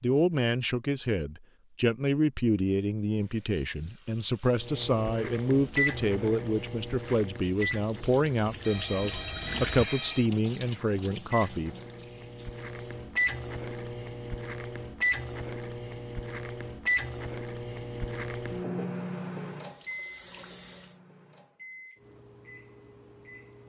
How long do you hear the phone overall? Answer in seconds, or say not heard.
2 s.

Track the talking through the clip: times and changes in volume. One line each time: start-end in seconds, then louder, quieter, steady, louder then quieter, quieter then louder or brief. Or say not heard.
0.0-11.7 steady.